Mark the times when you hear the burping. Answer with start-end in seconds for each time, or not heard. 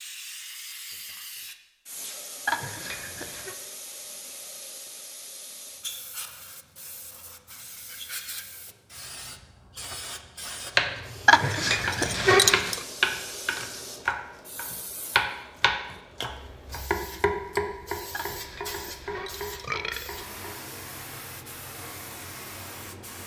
2.5-3.5, 11.2-12.8, 18.1-20.1.